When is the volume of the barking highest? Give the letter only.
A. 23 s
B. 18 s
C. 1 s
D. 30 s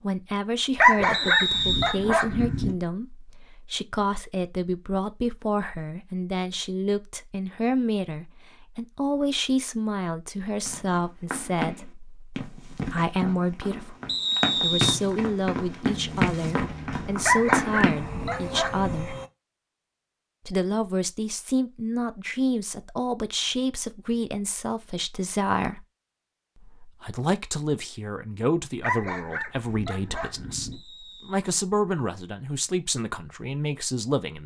C.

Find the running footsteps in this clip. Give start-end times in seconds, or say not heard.
10.7-18.0.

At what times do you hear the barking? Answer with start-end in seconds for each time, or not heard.
0.8-2.8, 17.2-19.1, 28.8-30.8.